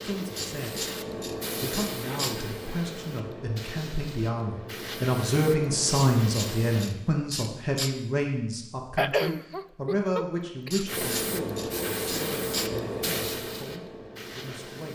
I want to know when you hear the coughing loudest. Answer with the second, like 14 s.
9 s.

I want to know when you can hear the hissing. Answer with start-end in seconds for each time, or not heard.
0.0-6.9, 10.8-14.9.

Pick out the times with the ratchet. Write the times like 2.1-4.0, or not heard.
0.3-2.4, 5.9-7.9, 10.7-12.7.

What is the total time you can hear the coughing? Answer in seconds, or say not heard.
2 s.